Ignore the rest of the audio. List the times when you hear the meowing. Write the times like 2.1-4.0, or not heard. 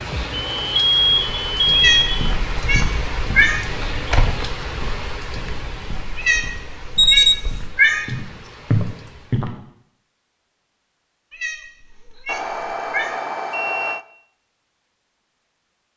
1.8-3.6, 6.2-8.1, 11.3-13.2.